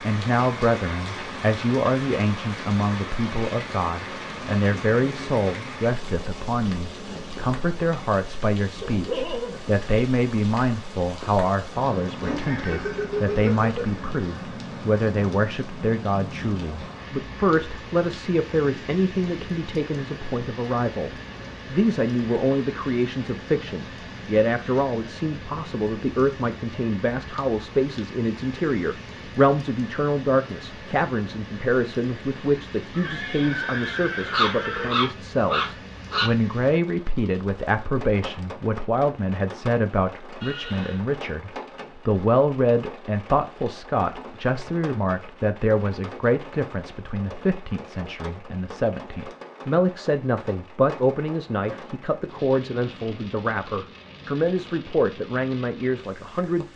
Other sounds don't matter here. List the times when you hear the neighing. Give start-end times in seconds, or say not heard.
12.2-13.9, 32.9-35.0, 40.4-41.0.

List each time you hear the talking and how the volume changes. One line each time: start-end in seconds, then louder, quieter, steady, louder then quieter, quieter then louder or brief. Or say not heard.
0.0-56.7 steady.